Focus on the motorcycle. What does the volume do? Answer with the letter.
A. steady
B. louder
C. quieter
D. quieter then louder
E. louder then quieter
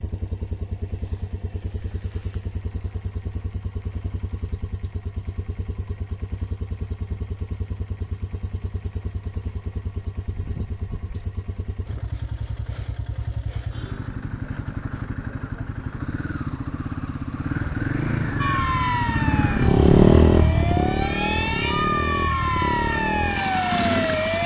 B.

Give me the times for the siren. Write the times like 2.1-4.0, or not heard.
18.4-24.4.